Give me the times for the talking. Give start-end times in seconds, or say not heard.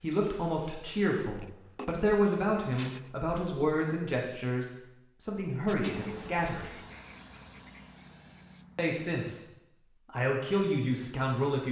0.0-6.7, 8.8-9.4, 10.1-11.6.